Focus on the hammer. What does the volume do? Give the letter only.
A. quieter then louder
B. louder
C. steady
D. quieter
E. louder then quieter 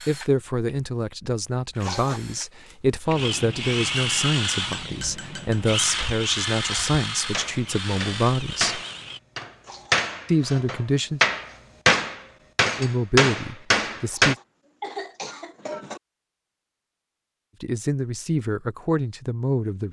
B.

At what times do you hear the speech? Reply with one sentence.
The speech can be heard from 0.1 to 8.8 s, from 10.2 to 11.2 s, from 12.8 to 14.3 s and from 17.6 to 19.8 s.